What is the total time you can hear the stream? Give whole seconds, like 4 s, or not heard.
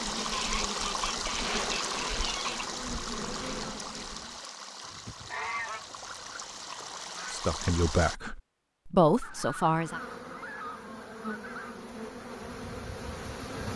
8 s.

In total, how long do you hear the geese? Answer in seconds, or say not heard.
8 s.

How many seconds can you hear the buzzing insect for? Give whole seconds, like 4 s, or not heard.
9 s.